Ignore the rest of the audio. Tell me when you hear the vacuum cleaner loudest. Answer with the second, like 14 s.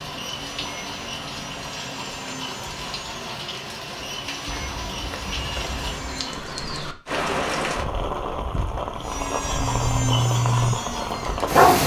10 s.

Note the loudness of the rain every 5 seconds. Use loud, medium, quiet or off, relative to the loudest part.
medium, loud, loud.